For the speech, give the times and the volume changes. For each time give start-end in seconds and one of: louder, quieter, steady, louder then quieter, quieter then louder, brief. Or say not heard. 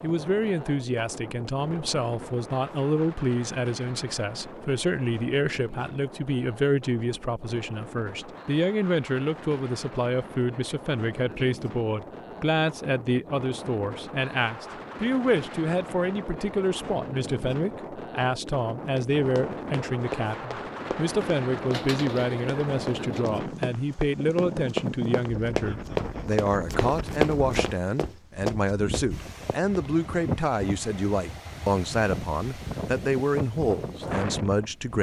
0.0-34.9 steady.